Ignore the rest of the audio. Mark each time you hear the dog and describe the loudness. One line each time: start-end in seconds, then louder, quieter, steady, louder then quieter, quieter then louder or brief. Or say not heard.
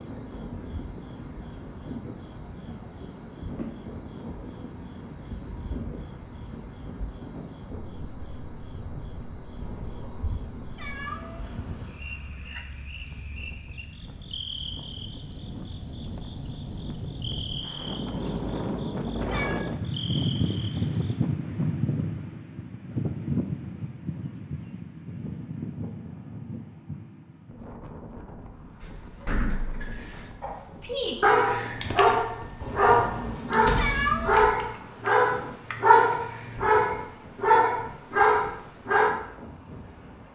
30.4-39.1 steady.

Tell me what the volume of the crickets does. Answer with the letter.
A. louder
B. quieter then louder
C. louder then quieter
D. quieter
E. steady
E.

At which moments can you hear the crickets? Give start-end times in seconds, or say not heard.
0.0-21.2.